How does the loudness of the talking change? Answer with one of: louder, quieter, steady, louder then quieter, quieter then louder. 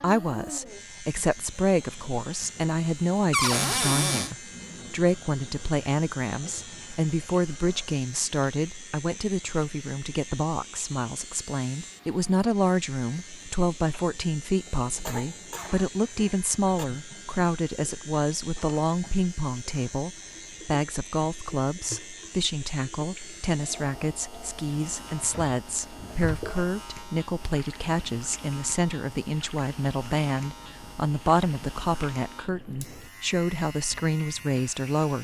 steady.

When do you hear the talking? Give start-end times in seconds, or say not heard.
0.0-35.1.